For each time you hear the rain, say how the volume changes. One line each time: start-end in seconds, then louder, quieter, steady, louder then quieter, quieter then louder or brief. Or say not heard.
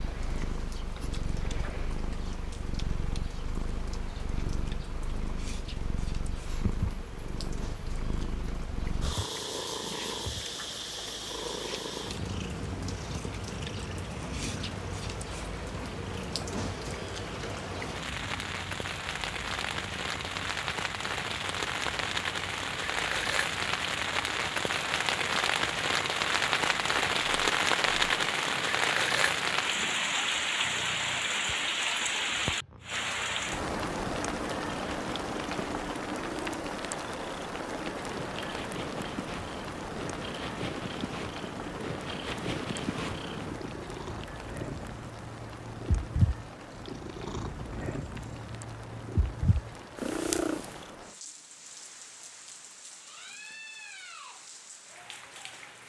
0.0-55.8 louder then quieter.